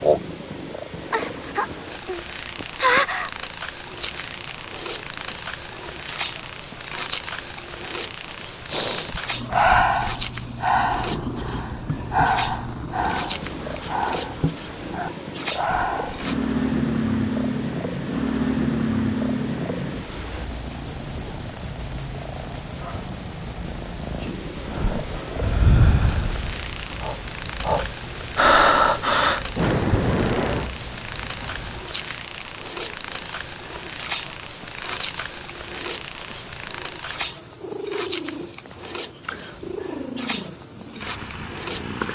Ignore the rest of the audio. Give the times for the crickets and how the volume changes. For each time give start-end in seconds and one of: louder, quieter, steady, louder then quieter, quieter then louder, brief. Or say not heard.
0.0-42.0 steady.